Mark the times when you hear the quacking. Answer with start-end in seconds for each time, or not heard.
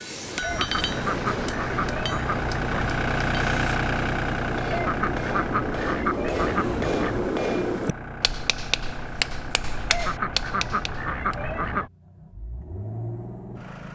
0.4-2.8, 4.7-7.3, 9.8-11.9.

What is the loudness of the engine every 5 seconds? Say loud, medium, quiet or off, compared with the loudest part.
loud, medium, medium.